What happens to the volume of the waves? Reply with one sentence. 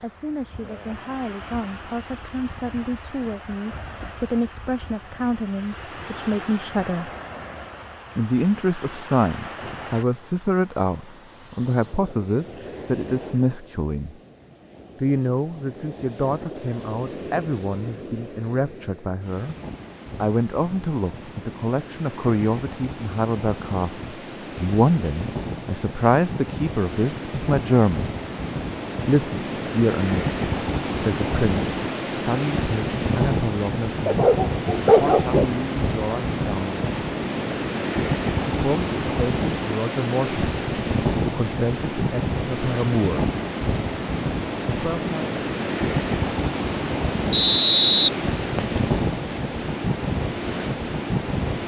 The volume of the waves goes up.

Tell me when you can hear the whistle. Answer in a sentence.
The whistle can be heard from 47.3 to 48.8 s.